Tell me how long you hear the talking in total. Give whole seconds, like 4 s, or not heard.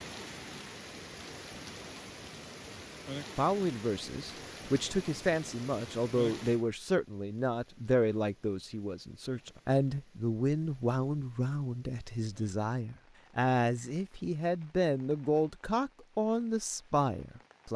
14 s.